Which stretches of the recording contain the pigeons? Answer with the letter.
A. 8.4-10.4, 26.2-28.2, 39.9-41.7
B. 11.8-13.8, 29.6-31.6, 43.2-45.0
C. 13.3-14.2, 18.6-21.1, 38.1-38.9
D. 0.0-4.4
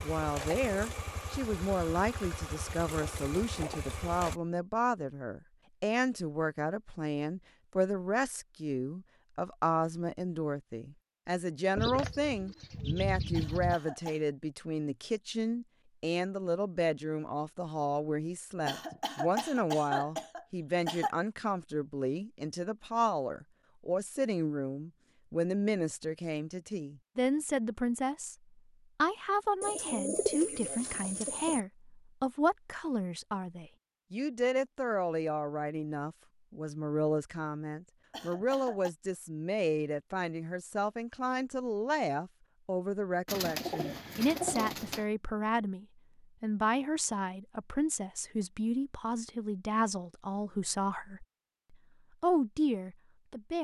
B.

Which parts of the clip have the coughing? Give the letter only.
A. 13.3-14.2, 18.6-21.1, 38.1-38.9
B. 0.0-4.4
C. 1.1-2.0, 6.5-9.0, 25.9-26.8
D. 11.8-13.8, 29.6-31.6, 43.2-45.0
A.